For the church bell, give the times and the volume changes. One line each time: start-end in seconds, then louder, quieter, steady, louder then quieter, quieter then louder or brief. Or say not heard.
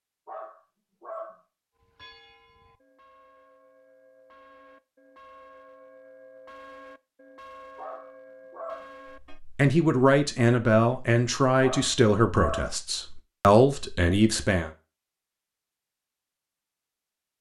1.8-9.4 louder.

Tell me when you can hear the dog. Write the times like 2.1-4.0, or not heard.
0.2-1.4, 7.8-8.9, 11.6-12.8.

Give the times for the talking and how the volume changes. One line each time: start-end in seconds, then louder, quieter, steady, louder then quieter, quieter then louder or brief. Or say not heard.
9.4-14.7 quieter then louder.